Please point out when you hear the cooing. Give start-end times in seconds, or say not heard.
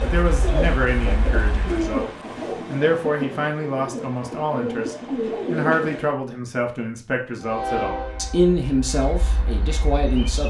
0.0-6.2.